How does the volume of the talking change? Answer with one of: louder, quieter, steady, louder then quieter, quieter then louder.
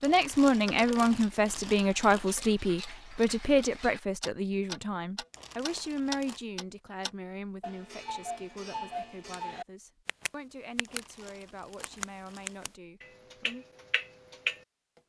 quieter.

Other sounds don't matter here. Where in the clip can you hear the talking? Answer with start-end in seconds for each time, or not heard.
0.0-13.7.